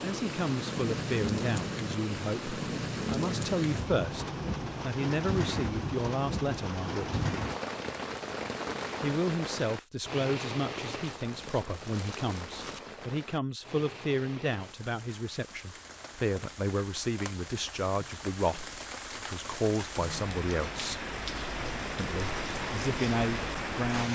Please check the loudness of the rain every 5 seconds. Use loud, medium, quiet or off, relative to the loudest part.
loud, loud, medium, medium, loud.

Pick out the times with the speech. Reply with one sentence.
The speech can be heard from 0.0 to 7.2 s, from 9.0 to 21.1 s and from 21.9 to 24.1 s.